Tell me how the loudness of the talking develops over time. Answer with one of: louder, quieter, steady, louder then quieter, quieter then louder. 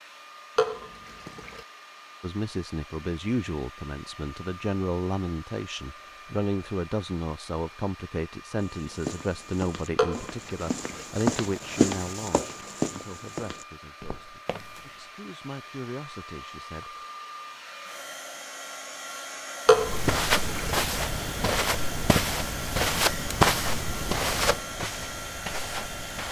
quieter.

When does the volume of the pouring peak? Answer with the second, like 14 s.
20 s.